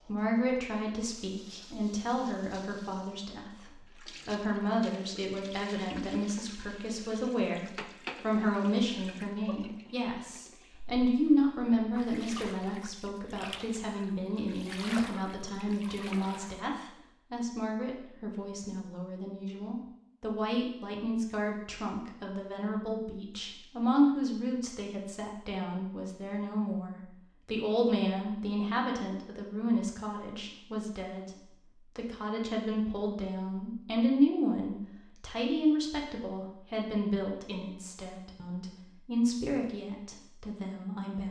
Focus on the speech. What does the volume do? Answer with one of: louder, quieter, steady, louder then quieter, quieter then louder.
steady.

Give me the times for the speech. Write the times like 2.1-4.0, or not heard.
0.1-31.3, 31.9-41.2.